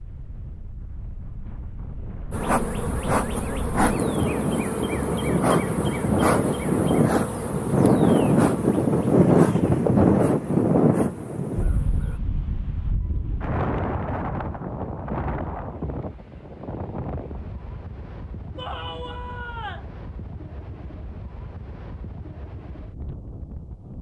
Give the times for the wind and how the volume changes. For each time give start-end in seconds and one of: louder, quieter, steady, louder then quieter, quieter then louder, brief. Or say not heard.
0.0-23.9 louder then quieter.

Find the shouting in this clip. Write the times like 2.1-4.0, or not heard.
18.6-19.9.